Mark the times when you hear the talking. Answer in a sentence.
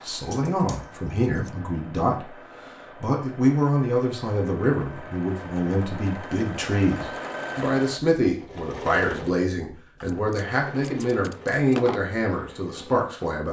The talking can be heard from 0.0 to 2.3 s and from 3.0 to 13.4 s.